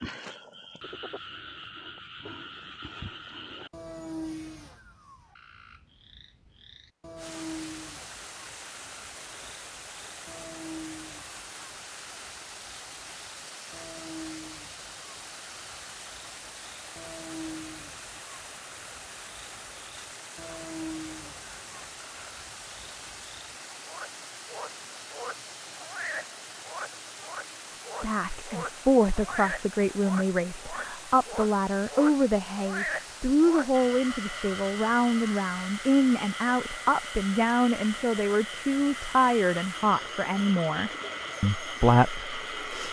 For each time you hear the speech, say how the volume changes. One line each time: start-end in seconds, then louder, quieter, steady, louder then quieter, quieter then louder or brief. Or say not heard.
28.0-42.8 steady.